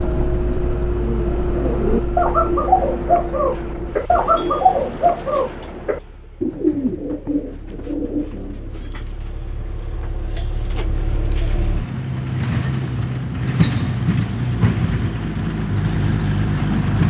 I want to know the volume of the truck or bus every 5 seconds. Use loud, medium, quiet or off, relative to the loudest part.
medium, quiet, loud, loud.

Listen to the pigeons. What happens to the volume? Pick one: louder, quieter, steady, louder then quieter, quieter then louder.
quieter.